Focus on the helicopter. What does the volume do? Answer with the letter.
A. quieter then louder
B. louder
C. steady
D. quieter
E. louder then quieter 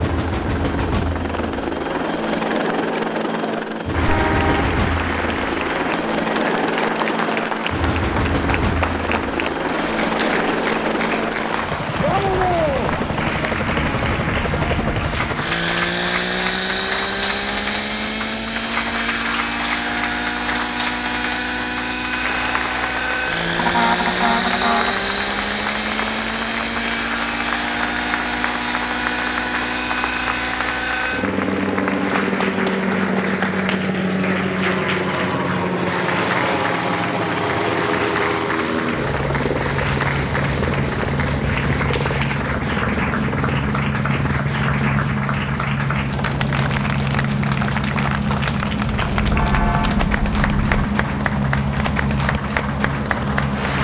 C.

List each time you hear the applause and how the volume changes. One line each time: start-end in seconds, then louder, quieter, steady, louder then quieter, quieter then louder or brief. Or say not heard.
4.0-53.7 steady.